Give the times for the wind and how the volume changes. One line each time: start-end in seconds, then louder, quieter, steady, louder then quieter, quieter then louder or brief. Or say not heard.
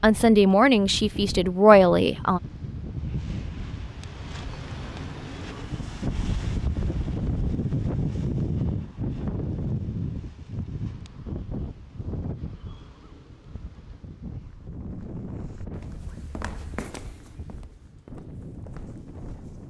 0.0-19.6 louder then quieter.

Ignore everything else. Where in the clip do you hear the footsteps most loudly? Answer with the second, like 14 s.
17 s.